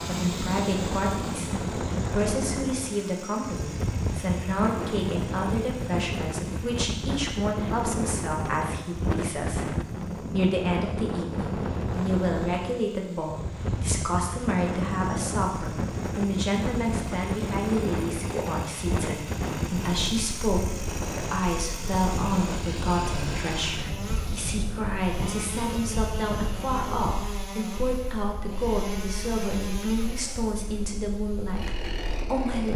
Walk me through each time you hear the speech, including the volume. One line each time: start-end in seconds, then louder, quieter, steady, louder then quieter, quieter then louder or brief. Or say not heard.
0.0-32.7 steady.